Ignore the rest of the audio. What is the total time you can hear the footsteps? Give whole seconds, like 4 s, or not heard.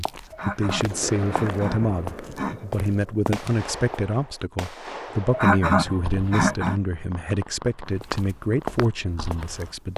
6 s.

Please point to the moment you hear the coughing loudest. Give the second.
6 s.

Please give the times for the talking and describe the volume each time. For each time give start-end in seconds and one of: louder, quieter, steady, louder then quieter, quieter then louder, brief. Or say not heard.
0.0-9.9 steady.